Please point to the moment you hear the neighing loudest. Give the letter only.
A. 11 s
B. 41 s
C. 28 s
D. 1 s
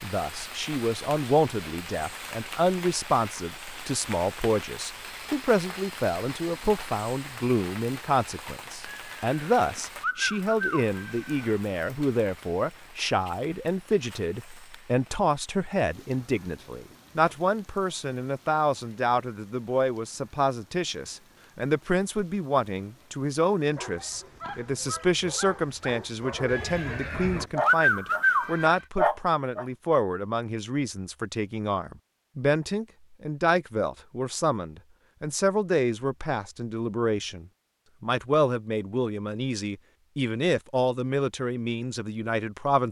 C.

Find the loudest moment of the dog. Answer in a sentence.
The loudest moment of the dog is at 29 seconds.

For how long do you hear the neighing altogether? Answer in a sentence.
You can hear the neighing for 5 seconds altogether.